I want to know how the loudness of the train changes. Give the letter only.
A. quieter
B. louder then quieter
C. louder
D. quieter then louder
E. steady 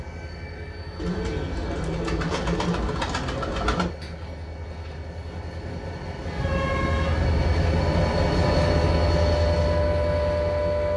C.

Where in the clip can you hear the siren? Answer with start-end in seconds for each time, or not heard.
6.2-10.9.